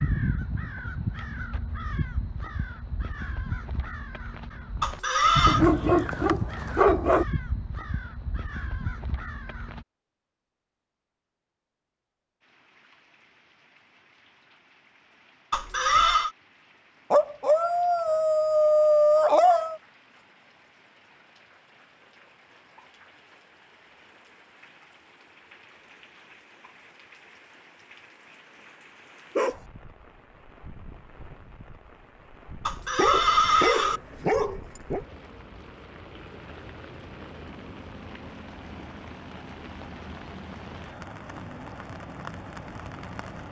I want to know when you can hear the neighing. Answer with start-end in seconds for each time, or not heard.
4.8-5.7, 15.5-16.3, 32.6-34.0.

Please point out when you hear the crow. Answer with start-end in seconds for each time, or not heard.
0.0-9.8.